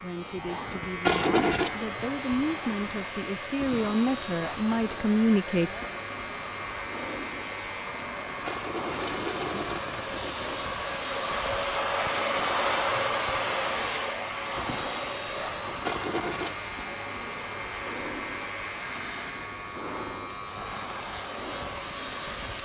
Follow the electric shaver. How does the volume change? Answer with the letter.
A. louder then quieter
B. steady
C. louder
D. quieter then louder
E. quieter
B.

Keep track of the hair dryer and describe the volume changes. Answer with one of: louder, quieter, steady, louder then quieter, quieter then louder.
louder then quieter.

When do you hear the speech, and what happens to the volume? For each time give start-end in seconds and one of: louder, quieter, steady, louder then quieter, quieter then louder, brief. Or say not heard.
0.0-5.7 louder.